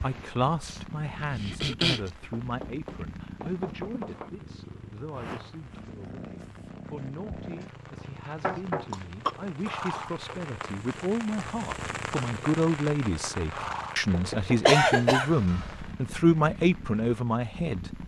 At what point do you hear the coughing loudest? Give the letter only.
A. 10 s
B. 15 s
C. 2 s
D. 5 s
B.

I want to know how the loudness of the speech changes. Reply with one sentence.
The loudness of the speech goes down, then up.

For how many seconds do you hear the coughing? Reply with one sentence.
You can hear the coughing for 4 seconds altogether.